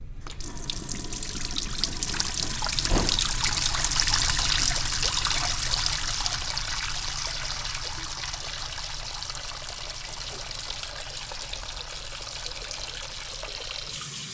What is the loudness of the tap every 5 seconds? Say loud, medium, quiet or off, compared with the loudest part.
loud, loud, medium.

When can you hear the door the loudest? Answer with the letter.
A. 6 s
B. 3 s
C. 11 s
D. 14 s
B.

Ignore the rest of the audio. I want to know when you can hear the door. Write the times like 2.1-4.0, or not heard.
2.4-3.4, 10.1-10.8.